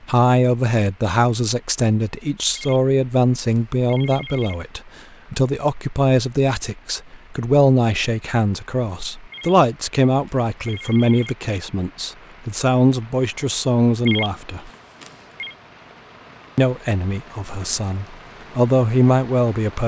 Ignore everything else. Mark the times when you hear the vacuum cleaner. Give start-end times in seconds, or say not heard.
not heard.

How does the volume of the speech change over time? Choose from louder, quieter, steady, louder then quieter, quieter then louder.
steady.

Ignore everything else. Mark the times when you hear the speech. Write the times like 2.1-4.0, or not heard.
0.0-14.7, 16.6-19.8.